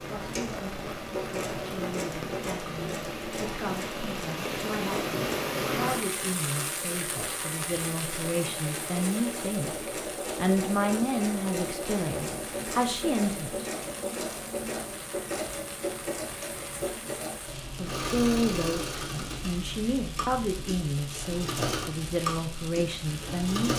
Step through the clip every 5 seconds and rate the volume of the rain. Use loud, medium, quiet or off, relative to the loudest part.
loud, loud, medium, medium, medium.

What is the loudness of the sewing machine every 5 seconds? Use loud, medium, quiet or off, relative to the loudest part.
loud, medium, loud, loud, loud.